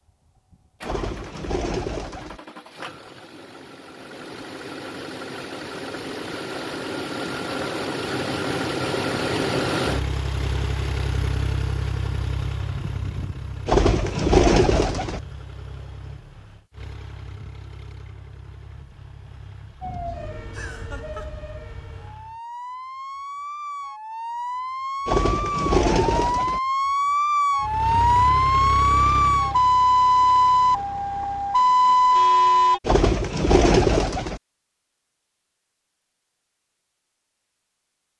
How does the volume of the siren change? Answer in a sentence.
The volume of the siren goes up.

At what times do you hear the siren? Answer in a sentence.
You can hear the siren from 19.8 to 32.8 s.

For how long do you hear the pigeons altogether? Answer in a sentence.
You can hear the pigeons for 6 seconds altogether.